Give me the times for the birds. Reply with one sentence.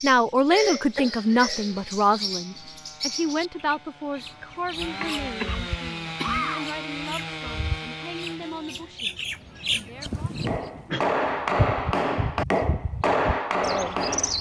You can hear the birds from 0.0 to 14.3 s.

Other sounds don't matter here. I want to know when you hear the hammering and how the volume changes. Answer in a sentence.
You can hear the hammering from 10.2 to 14.3 s, at a steady volume.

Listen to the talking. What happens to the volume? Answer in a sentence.
The loudness of the talking goes down.